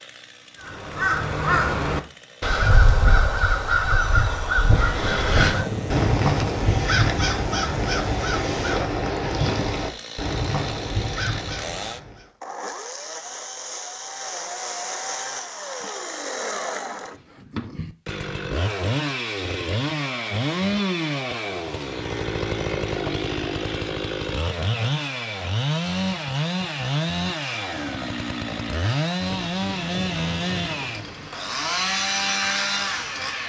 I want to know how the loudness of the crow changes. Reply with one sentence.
The loudness of the crow goes down.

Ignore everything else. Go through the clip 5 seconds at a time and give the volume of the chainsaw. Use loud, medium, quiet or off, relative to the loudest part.
quiet, quiet, medium, loud, loud, loud, loud.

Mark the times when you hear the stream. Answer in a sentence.
You can't hear the stream here.